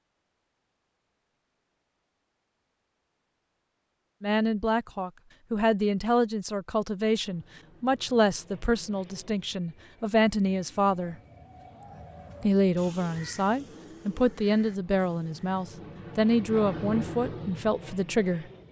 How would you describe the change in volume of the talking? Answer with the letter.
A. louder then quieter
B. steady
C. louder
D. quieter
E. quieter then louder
B.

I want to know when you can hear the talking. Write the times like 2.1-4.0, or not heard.
4.2-11.2, 12.4-18.4.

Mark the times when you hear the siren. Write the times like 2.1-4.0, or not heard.
not heard.